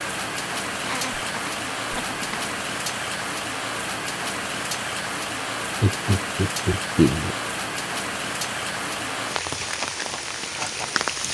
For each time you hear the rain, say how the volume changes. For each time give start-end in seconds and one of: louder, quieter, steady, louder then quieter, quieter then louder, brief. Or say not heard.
0.0-11.2 steady.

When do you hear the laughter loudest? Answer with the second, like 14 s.
7 s.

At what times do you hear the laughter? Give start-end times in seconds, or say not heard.
0.8-2.5, 5.8-7.3.